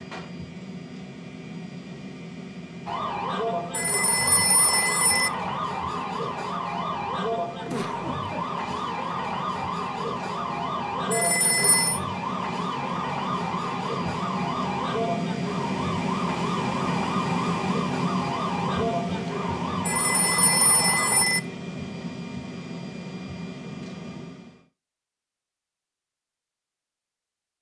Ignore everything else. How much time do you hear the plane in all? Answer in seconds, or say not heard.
25 s.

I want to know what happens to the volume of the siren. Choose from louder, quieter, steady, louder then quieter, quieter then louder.
steady.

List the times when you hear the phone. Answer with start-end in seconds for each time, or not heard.
3.7-5.3, 11.1-12.0, 19.9-21.4.